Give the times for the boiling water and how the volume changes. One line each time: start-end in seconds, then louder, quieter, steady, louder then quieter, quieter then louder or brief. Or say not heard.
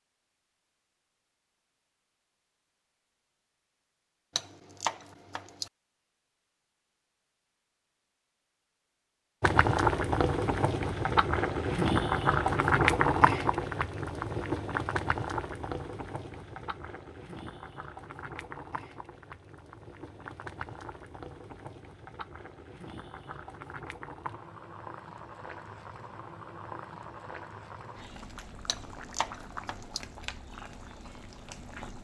9.4-31.9 quieter.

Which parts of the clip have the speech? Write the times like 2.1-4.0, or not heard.
not heard.